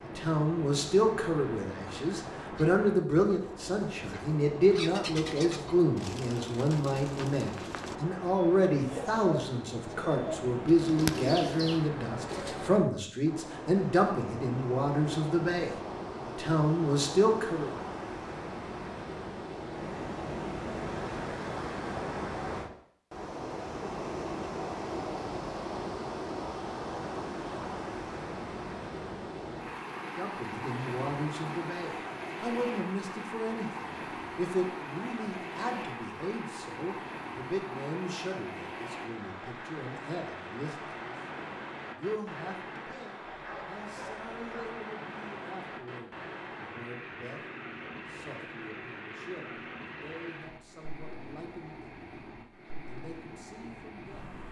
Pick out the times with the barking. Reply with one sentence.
You can hear the barking from 43.2 to 44.8 s.